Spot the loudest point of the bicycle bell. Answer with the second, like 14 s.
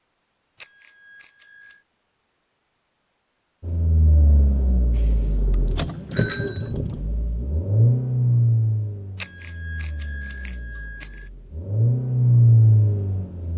6 s.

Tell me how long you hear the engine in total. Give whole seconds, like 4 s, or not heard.
10 s.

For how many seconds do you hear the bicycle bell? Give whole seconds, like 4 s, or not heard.
5 s.